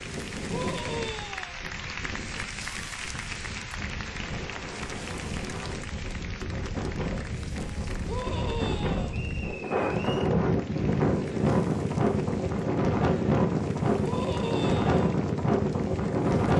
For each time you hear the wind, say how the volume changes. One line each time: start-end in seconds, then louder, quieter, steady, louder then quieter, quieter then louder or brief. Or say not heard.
0.0-16.5 louder.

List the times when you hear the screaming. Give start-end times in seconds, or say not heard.
0.5-1.6, 8.1-9.2, 14.0-15.0.